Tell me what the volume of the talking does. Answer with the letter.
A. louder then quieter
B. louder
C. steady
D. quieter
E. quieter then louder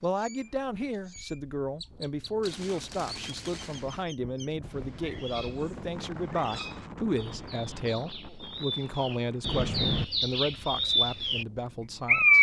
C.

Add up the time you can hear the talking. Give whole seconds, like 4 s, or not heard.
12 s.